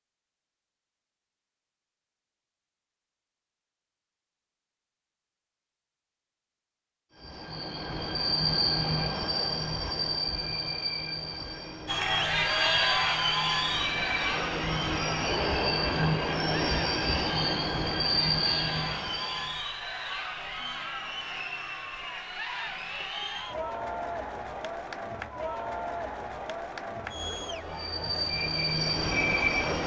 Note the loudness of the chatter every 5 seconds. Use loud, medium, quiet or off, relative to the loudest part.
off, off, loud, medium, medium, medium.